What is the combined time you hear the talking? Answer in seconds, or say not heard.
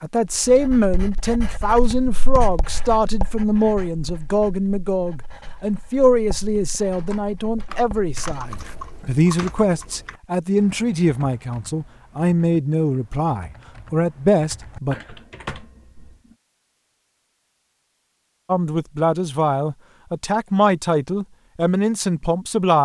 19 s.